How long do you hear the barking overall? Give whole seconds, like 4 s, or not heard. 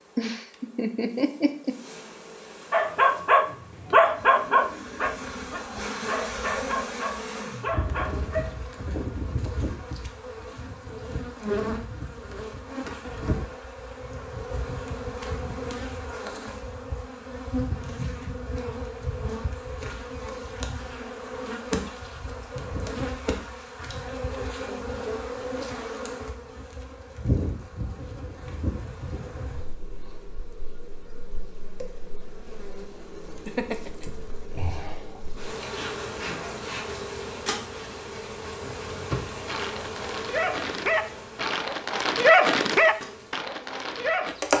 12 s.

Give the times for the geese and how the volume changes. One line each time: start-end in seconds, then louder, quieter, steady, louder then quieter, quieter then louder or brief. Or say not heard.
not heard.